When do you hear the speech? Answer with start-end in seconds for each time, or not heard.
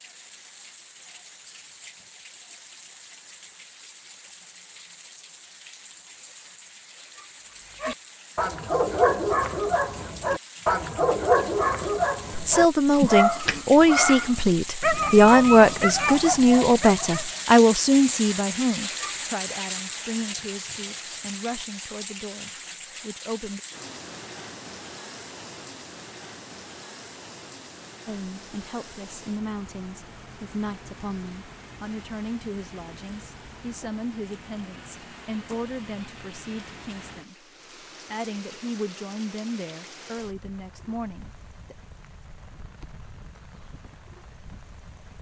12.3-23.6, 28.1-37.4, 38.0-41.8.